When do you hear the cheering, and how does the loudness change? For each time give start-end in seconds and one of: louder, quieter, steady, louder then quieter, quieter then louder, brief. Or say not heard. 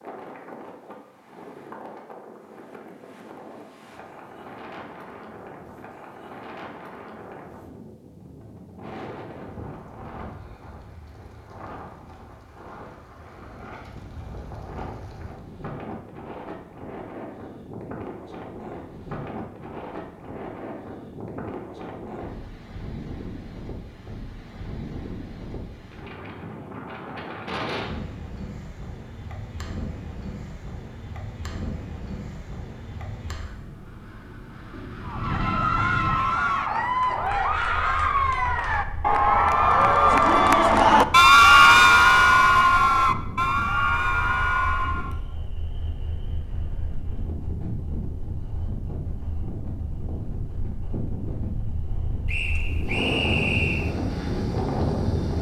35.0-45.1 louder then quieter.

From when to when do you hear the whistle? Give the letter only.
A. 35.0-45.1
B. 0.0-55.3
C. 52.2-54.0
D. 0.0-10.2
C.